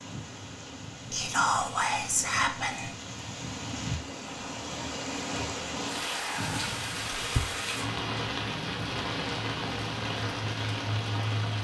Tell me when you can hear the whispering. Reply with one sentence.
The whispering can be heard from 1.1 to 3.0 s and from 6.1 to 7.5 s.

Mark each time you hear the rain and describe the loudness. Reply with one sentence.
You can hear the rain from 0.0 to 11.5 s, getting louder.